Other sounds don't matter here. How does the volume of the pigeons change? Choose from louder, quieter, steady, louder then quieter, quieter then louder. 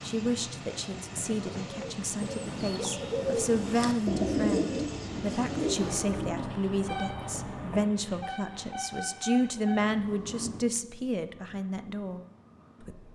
louder then quieter.